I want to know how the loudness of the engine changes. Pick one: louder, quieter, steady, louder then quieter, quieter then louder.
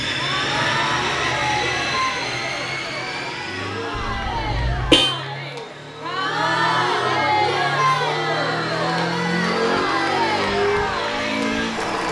quieter then louder.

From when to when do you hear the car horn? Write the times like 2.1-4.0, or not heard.
4.0-5.2.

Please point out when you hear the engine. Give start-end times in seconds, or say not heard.
0.0-12.0.